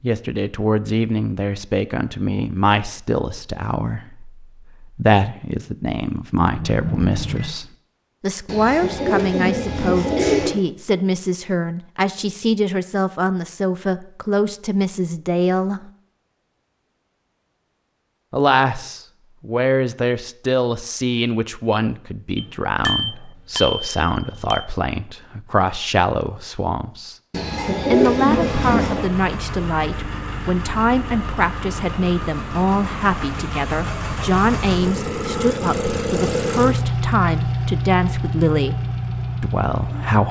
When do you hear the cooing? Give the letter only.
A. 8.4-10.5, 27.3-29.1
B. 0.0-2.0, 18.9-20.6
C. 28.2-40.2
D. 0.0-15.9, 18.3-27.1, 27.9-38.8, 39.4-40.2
A.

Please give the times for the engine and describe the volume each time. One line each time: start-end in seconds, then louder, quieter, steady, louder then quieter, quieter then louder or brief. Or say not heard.
28.2-40.2 louder.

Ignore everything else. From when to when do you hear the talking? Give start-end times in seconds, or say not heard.
0.0-15.9, 18.3-27.1, 27.9-38.8, 39.4-40.2.